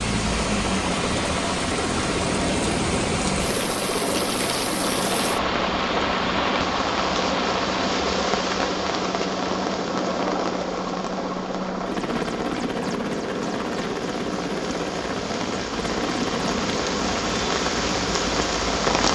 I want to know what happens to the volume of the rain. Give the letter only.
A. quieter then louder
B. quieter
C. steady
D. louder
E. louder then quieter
A.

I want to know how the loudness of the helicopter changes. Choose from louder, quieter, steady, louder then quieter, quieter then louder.
steady.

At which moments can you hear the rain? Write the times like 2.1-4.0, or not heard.
0.0-19.0.